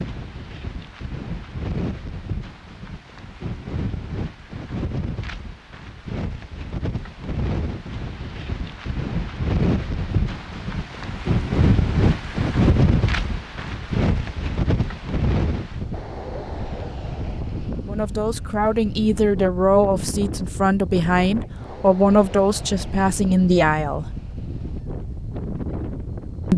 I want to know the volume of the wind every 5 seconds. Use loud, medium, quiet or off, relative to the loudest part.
medium, medium, loud, medium, medium, medium.